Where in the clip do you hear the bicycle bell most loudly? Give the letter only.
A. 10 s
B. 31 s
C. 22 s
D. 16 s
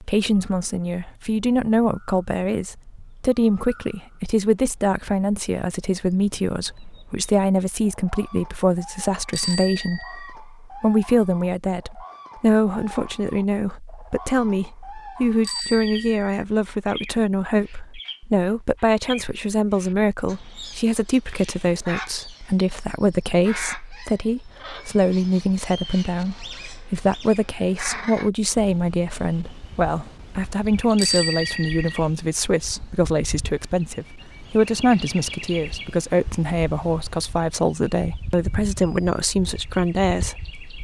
B.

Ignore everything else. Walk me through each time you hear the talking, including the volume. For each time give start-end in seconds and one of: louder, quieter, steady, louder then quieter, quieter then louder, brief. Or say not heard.
0.0-40.5 steady.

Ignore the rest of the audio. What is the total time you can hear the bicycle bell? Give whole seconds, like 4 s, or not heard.
3 s.